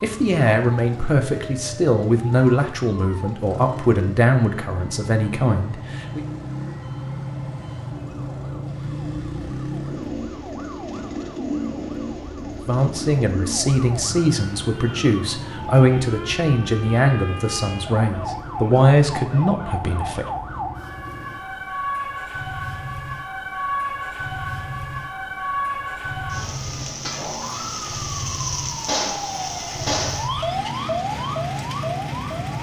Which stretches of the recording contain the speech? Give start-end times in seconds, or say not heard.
0.0-6.2, 12.7-20.2.